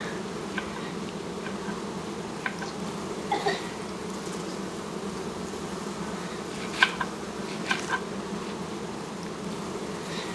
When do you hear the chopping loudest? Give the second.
7 s.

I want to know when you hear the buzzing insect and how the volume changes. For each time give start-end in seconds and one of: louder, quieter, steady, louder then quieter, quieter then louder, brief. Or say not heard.
0.0-10.3 steady.